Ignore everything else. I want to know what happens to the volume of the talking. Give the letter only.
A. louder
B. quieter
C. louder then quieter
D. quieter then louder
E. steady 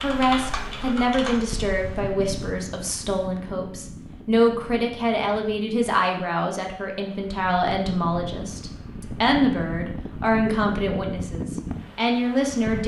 E.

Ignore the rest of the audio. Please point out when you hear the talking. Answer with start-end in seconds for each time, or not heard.
0.0-12.8.